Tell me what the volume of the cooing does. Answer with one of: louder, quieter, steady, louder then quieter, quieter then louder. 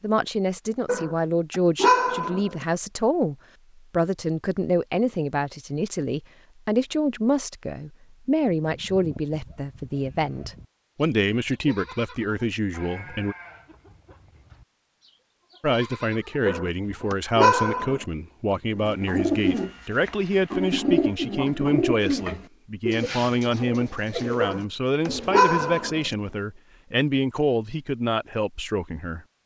quieter.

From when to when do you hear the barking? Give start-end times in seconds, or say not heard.
0.8-2.6, 16.4-18.1, 24.4-26.1.